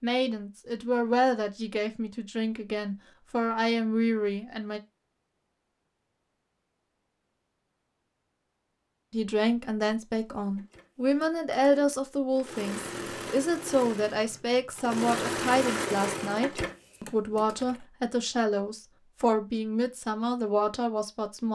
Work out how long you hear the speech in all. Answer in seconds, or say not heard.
17 s.